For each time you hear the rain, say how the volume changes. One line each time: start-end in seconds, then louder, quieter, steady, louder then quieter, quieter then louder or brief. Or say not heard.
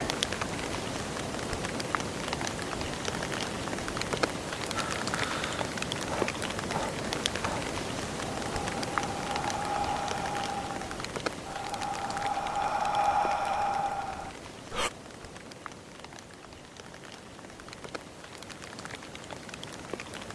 0.0-20.2 quieter.